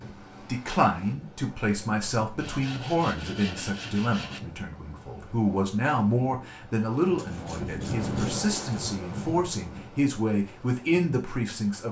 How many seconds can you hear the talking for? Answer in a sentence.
You can hear the talking for 11 seconds altogether.